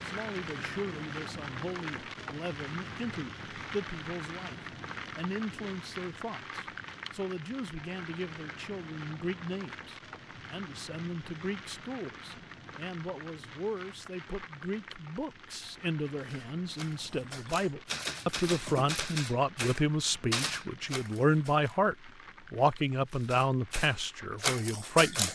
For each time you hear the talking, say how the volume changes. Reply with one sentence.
The talking can be heard from 0.0 to 25.3 s, getting louder.